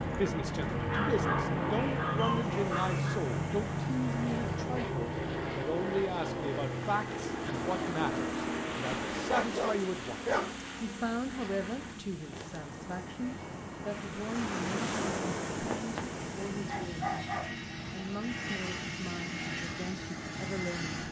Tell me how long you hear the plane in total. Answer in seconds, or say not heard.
21 s.